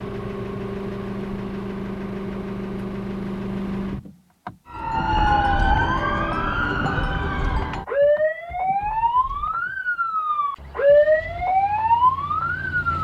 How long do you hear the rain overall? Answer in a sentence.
The rain can't be heard in this clip.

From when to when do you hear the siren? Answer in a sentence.
You can hear the siren from 4.7 to 12.9 s.